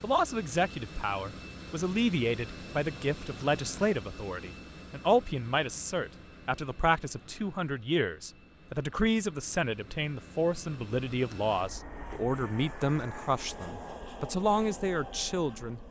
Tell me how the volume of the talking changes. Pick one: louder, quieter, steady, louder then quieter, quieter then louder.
steady.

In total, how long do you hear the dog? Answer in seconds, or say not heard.
not heard.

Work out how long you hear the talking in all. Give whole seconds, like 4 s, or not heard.
16 s.